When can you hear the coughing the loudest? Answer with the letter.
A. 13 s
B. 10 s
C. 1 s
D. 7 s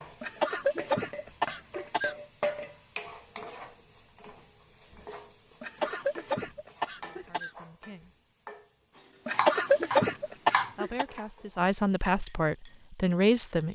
B.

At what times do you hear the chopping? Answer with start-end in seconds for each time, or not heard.
9.3-11.4.